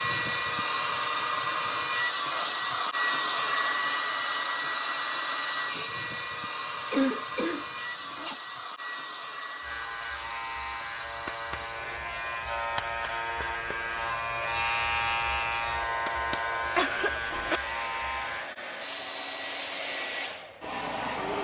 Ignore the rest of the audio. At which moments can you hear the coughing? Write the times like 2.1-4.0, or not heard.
6.9-8.3, 16.8-17.6.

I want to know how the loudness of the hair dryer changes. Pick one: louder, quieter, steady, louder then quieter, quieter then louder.
quieter then louder.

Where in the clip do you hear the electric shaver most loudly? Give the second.
15 s.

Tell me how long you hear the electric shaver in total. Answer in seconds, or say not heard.
9 s.